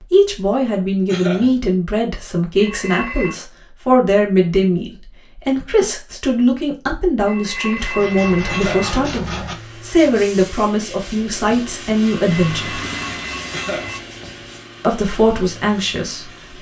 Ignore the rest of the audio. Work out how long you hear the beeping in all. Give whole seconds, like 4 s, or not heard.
4 s.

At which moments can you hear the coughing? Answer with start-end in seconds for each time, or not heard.
1.1-1.6, 8.4-8.9, 13.5-14.0.